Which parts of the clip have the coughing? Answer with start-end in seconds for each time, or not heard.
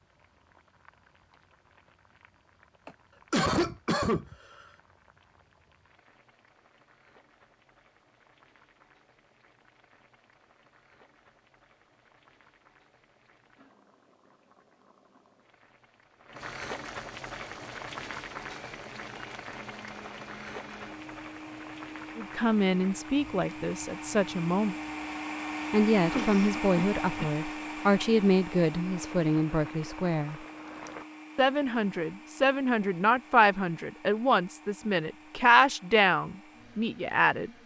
2.9-4.3, 26.1-27.4.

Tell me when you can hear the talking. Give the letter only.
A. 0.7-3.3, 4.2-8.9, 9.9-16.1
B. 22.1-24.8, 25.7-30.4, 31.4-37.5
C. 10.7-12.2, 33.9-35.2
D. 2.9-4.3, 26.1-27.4
B.